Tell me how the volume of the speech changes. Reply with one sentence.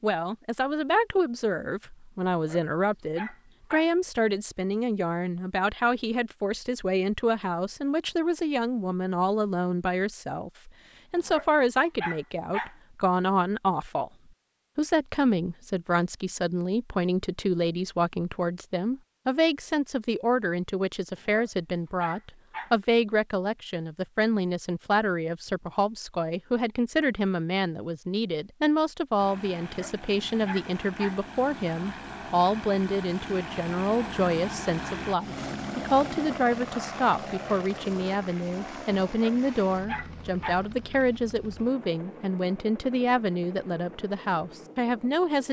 The loudness of the speech stays about the same.